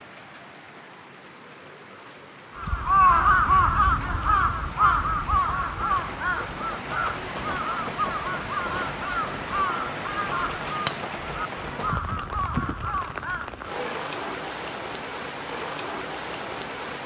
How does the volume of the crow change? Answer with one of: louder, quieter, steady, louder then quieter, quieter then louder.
quieter.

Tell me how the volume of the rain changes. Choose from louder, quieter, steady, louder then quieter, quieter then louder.
louder.